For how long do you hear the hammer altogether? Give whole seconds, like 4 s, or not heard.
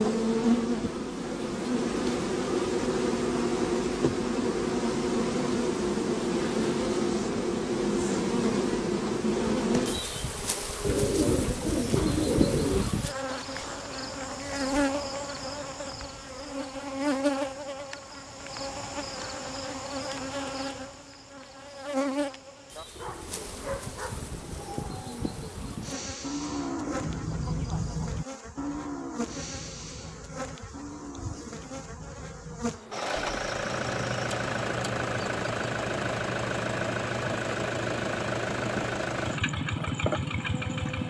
not heard.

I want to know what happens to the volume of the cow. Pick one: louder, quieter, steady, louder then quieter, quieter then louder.
louder then quieter.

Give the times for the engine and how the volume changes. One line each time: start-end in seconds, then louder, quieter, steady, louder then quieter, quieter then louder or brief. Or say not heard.
32.9-41.0 steady.